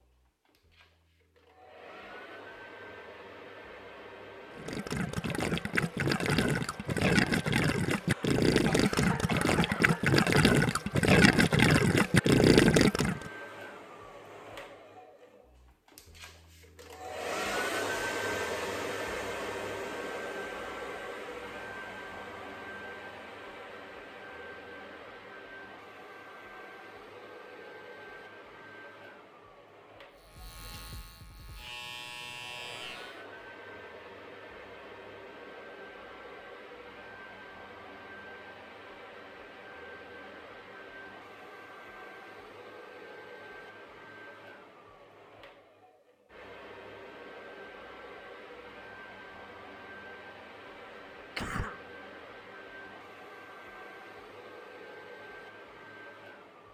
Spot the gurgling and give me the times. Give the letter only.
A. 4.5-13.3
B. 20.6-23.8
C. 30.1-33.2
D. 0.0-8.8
A.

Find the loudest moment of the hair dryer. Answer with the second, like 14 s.
18 s.